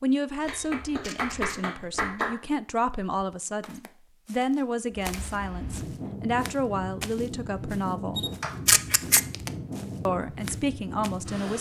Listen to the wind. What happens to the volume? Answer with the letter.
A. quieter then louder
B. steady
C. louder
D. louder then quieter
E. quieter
B.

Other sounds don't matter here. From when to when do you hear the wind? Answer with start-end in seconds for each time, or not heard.
4.9-11.5.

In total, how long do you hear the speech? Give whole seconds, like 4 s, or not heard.
10 s.